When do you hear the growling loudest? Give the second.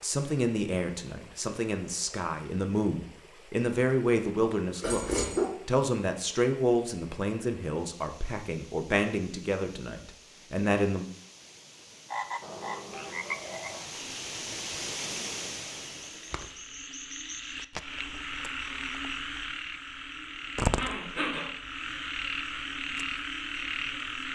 5 s.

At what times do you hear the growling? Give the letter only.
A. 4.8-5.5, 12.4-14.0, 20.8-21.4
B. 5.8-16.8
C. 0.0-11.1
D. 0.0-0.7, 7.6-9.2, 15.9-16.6
A.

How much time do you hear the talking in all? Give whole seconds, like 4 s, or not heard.
11 s.